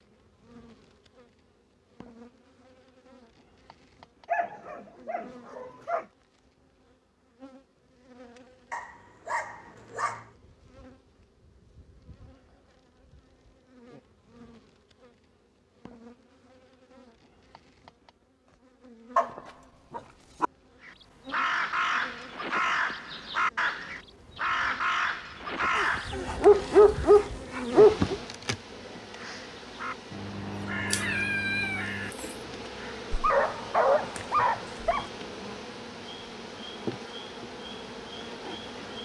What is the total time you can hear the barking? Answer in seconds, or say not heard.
9 s.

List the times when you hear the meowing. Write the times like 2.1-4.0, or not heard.
30.9-32.4.